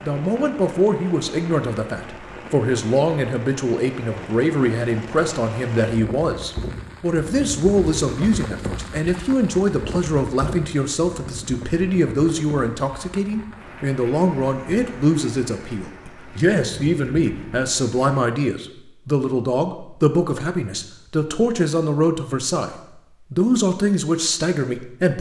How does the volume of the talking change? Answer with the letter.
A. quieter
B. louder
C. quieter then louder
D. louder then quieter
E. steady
E.